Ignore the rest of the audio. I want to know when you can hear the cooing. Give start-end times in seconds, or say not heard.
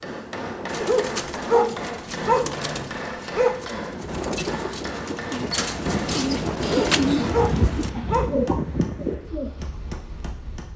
0.7-9.8.